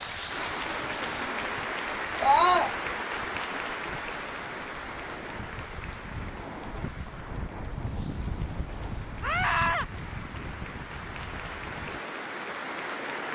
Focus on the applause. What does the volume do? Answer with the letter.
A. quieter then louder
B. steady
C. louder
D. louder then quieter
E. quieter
A.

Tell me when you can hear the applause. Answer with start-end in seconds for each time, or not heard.
0.0-13.2.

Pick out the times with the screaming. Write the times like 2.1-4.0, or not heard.
2.2-2.7, 9.2-9.8.